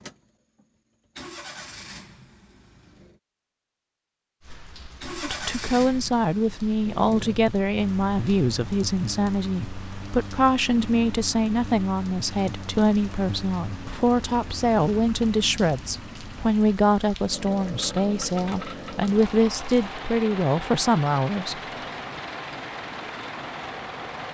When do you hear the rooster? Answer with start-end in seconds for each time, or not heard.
not heard.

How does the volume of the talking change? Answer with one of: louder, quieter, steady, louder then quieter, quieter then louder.
steady.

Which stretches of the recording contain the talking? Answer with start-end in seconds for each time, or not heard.
5.2-21.6.